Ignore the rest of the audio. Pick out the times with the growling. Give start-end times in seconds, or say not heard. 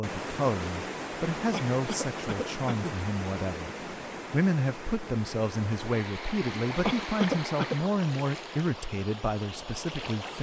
not heard.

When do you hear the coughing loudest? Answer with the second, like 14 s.
7 s.